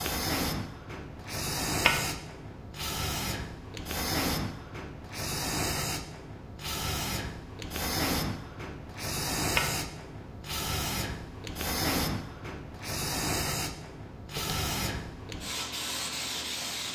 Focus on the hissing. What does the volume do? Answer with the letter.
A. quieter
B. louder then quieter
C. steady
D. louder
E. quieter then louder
C.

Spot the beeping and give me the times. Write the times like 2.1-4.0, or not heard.
not heard.